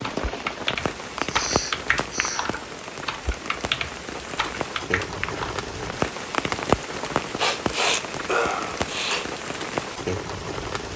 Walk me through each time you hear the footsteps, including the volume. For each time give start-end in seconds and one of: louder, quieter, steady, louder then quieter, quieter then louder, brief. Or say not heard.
not heard.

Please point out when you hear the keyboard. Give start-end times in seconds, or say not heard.
0.0-5.5.